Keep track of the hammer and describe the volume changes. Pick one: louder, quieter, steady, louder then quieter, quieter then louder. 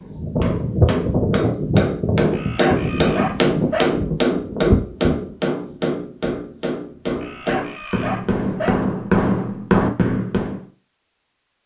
quieter then louder.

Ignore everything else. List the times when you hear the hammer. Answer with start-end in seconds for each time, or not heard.
0.1-10.6.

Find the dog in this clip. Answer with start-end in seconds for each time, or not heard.
2.3-4.0, 7.2-8.8.